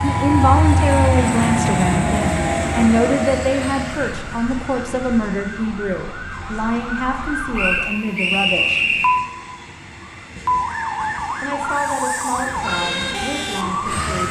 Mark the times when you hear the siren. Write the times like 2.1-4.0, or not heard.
0.0-14.2.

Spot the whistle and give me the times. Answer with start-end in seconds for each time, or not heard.
7.5-9.2.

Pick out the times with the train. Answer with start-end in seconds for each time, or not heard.
0.0-14.2.